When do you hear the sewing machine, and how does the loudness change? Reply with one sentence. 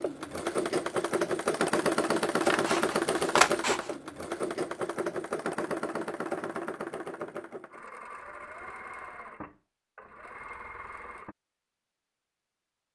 You can hear the sewing machine from 0.0 to 11.3 s, getting quieter.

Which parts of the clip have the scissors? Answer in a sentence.
You can hear the scissors from 2.5 to 4.0 s.